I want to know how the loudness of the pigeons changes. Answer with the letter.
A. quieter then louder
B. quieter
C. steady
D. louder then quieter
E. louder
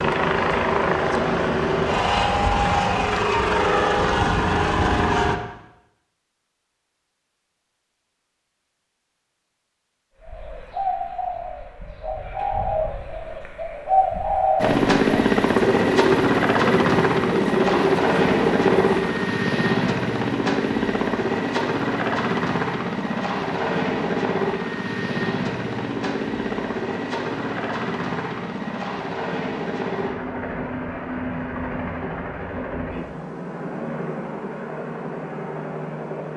E.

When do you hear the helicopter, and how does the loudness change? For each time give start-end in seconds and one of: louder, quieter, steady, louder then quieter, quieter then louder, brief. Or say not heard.
0.0-5.3 steady
14.6-36.3 quieter.